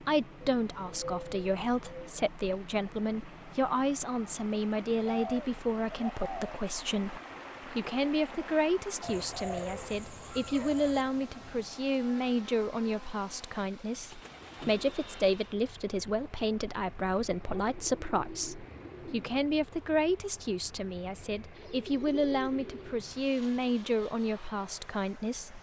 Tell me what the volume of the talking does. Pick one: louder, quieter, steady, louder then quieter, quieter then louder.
steady.